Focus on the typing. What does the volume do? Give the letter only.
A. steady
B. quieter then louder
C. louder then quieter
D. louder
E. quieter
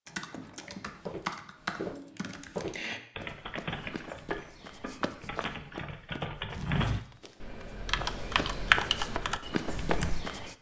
D.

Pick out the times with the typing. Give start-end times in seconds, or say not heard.
0.1-10.2.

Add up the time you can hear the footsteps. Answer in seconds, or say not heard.
10 s.